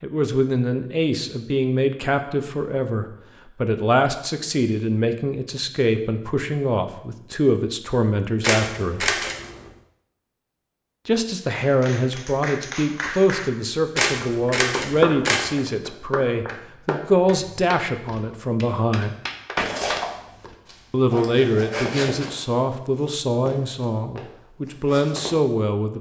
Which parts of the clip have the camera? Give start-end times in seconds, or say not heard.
8.4-9.7, 13.9-15.5.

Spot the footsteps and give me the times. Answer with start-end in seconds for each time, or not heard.
19.6-25.4.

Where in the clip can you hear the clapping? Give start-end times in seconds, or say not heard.
11.6-20.6.